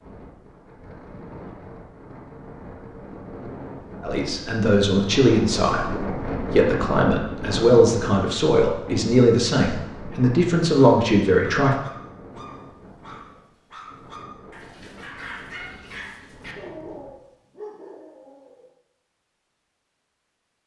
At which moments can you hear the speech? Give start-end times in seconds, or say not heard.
4.0-11.8.